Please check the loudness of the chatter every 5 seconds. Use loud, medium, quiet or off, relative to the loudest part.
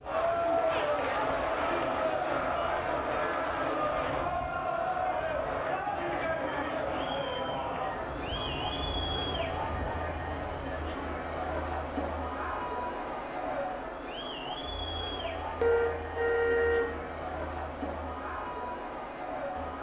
loud, loud, medium, medium.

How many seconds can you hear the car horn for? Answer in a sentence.
The car horn can be heard for 2 seconds in total.